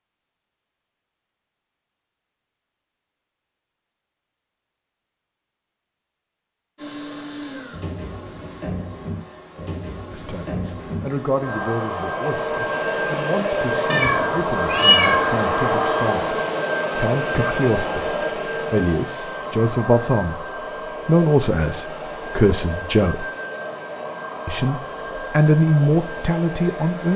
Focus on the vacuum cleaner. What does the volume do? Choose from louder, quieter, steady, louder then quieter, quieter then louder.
louder then quieter.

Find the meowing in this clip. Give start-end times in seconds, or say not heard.
13.9-15.4.